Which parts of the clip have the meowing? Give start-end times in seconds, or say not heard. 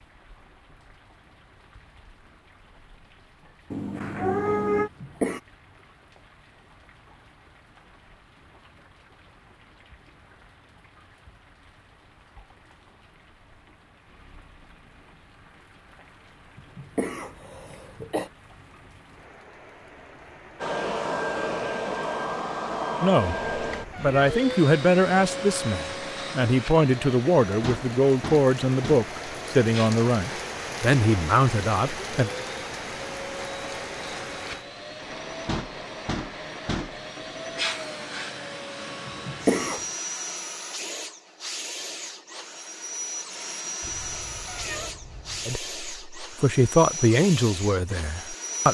3.7-4.9, 23.5-24.4, 43.8-45.5.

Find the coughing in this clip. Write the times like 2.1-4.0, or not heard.
4.8-5.4, 16.6-18.3, 39.0-39.9.